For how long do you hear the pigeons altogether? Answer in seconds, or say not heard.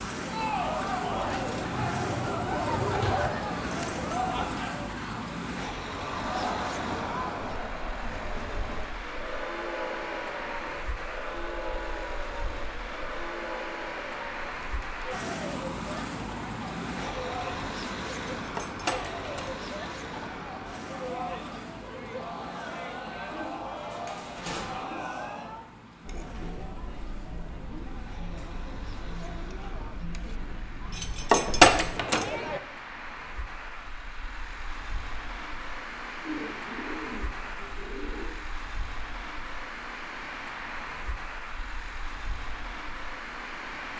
6 s.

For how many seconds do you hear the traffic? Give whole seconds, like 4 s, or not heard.
44 s.